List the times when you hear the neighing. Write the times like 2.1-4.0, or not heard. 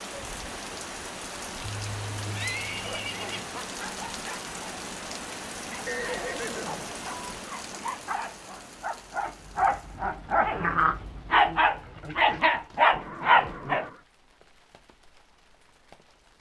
1.8-3.5, 5.8-7.4, 12.9-14.1.